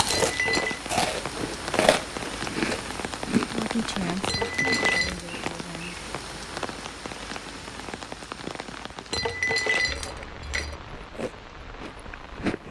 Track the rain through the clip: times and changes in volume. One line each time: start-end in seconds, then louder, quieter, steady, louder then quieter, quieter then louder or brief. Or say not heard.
0.0-12.6 quieter.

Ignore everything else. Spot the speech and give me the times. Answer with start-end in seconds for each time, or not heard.
3.5-6.0.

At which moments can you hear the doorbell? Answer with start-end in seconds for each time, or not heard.
not heard.